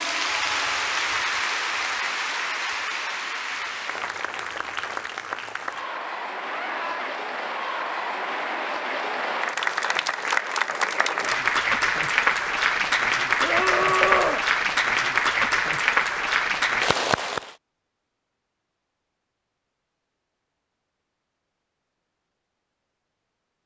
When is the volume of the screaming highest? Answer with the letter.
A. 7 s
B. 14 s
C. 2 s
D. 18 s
B.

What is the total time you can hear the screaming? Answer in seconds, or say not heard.
2 s.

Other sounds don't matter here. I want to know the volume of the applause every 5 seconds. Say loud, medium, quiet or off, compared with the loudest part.
medium, medium, loud, loud, off.